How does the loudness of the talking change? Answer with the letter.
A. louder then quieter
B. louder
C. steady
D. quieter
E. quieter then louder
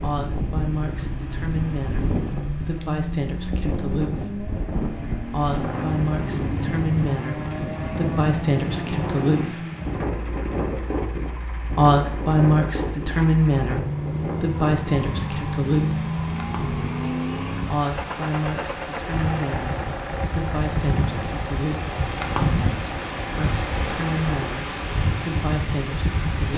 A.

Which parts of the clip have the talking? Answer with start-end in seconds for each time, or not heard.
0.0-4.3, 5.3-9.7, 11.8-16.1, 17.7-21.9, 23.4-26.5.